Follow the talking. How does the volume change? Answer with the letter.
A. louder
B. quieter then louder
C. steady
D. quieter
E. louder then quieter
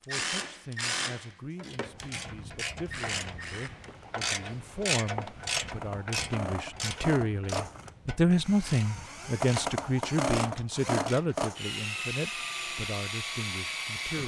E.